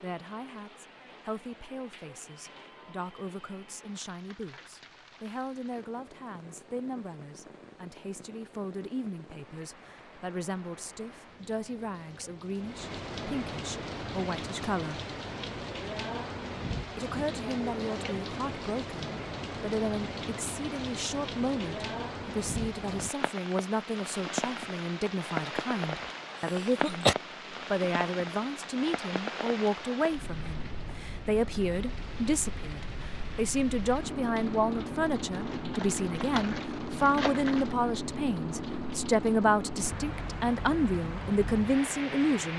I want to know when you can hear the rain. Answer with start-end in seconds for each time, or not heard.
0.0-42.5.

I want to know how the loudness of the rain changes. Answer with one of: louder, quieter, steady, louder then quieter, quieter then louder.
louder.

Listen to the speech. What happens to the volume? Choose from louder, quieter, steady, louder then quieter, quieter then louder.
louder.